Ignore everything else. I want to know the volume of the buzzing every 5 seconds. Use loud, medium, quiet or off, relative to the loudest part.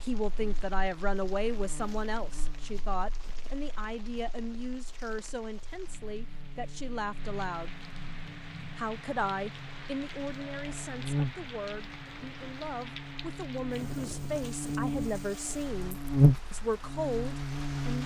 quiet, quiet, medium, loud.